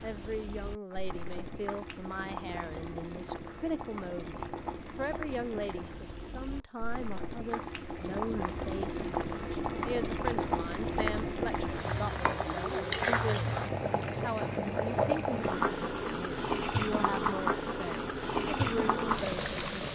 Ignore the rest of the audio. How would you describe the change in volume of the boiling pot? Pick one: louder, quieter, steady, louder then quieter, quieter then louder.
louder.